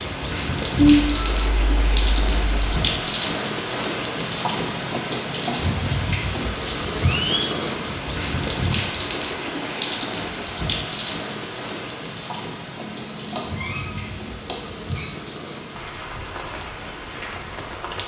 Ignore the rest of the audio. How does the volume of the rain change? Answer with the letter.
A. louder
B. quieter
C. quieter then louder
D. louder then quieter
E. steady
B.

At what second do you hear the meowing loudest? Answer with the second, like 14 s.
1 s.